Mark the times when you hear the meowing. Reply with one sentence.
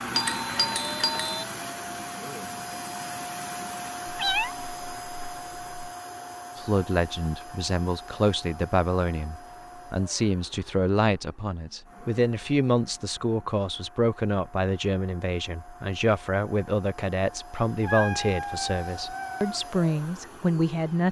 The meowing can be heard from 4.0 to 5.9 s and from 17.8 to 19.6 s.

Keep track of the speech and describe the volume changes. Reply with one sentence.
The loudness of the speech stays about the same.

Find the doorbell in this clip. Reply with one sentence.
You can hear the doorbell from 0.1 to 1.4 s.